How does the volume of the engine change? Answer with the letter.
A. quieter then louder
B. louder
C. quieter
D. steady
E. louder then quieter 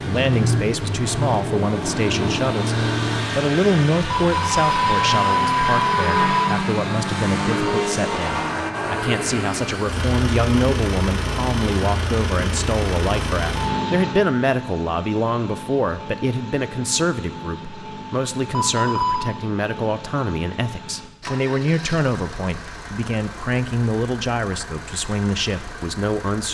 C.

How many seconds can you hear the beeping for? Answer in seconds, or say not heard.
3 s.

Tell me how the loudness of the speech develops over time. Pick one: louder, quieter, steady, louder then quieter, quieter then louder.
steady.